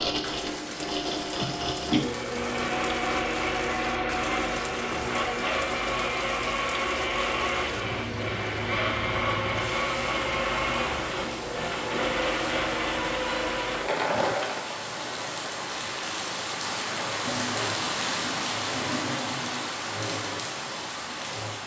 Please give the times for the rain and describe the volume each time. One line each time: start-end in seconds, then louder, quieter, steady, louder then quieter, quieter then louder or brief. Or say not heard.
0.1-21.6 louder.